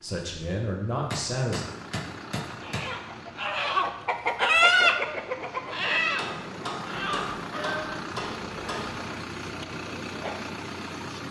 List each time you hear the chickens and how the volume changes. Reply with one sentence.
You can hear the chickens from 2.5 to 10.3 s, getting louder then quieter.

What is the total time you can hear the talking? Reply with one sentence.
You can hear the talking for 2 seconds altogether.